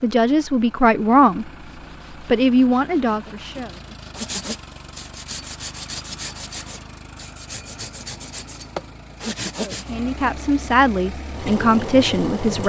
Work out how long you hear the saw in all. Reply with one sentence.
The saw can be heard for 8 seconds in total.